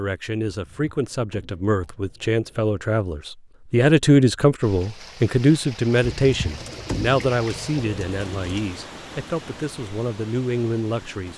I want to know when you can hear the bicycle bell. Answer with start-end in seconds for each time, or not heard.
not heard.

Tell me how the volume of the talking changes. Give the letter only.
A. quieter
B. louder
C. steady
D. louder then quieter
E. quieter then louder
D.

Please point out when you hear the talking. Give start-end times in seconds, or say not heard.
0.0-11.3.